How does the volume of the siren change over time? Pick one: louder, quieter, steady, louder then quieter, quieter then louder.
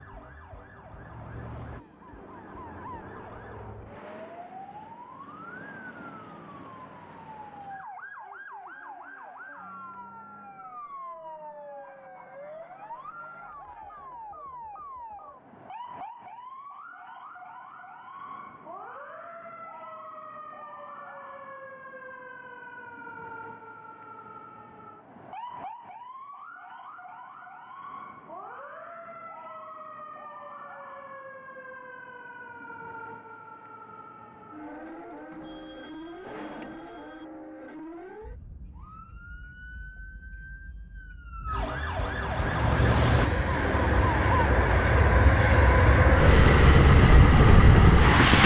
louder.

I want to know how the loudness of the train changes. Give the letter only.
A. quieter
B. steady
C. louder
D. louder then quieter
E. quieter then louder
C.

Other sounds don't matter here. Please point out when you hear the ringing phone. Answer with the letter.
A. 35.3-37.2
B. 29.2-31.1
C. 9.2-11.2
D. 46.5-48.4
A.